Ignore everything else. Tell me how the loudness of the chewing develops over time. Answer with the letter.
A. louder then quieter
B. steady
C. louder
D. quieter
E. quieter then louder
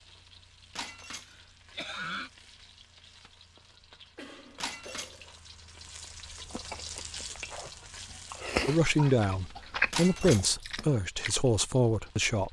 A.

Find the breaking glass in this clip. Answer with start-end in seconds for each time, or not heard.
0.8-1.4, 4.6-5.2, 9.9-10.6.